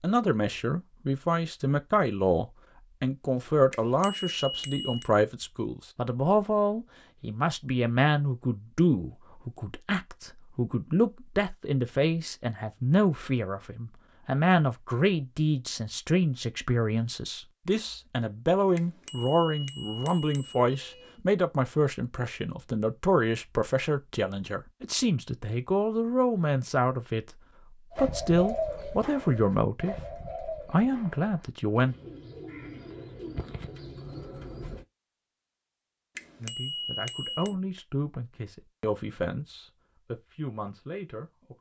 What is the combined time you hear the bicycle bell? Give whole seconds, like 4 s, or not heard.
5 s.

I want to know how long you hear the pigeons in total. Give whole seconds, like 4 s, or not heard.
7 s.